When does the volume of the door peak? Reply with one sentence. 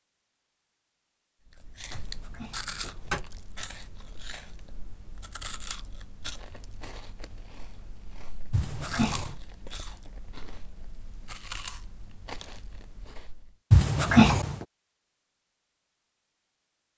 The volume of the door peaks at 14 seconds.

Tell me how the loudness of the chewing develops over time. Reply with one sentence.
The volume of the chewing goes down, then up.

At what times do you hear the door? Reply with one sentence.
The door can be heard from 1.9 to 3.2 s, from 8.5 to 9.3 s and from 13.7 to 14.7 s.